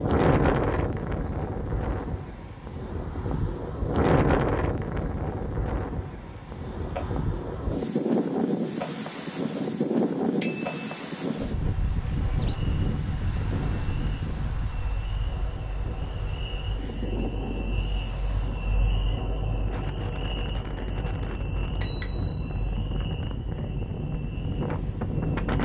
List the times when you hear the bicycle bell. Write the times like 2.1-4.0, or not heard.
10.4-10.9, 21.6-23.2.